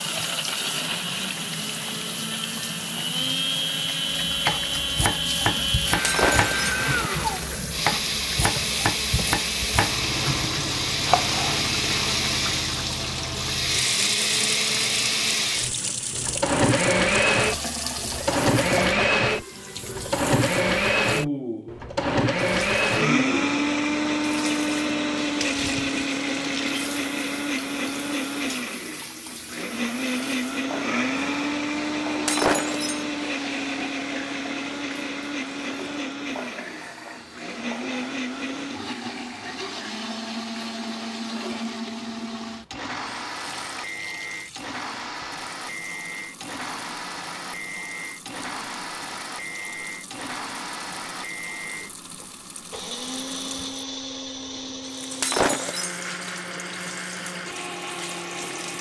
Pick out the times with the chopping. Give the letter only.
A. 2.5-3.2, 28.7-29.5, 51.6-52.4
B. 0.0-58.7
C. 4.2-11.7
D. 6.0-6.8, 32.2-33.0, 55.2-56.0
C.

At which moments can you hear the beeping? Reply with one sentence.
The beeping can't be heard in this clip.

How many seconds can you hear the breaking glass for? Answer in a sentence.
The breaking glass can be heard for 2 seconds in total.